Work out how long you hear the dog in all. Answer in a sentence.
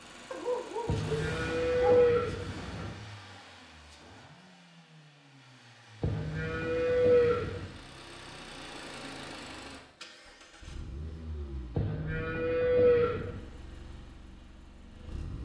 The dog can be heard for 2 seconds in total.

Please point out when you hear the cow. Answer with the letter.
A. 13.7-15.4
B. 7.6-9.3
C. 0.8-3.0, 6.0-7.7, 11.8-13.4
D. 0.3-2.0
C.